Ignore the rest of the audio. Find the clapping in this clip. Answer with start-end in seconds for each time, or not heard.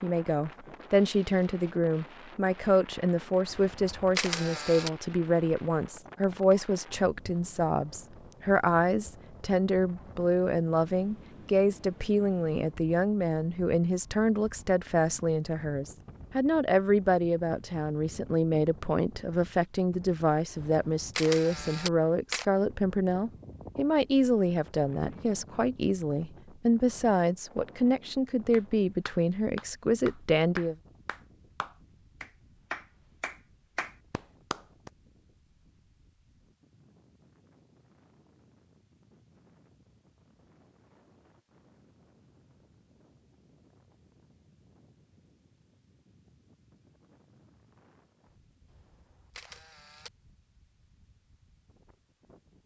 28.5-34.9.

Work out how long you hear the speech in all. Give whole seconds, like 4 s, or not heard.
31 s.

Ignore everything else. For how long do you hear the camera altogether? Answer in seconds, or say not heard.
5 s.